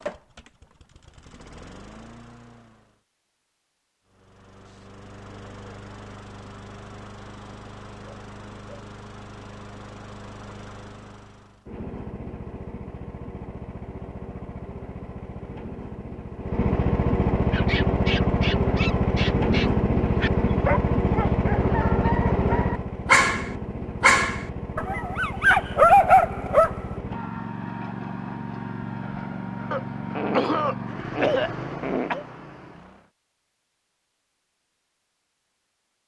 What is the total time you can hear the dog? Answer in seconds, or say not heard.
9 s.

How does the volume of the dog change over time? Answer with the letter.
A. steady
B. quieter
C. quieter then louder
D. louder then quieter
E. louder
E.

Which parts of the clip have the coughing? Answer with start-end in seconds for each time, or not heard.
29.7-32.2.